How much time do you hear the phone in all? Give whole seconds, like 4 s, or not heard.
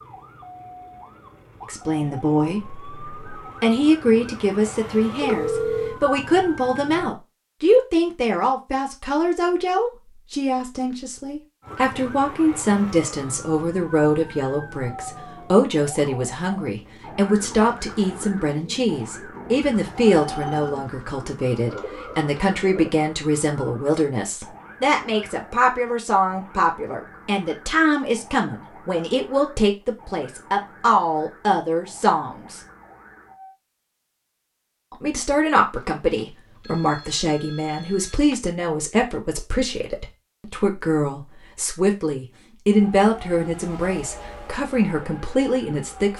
4 s.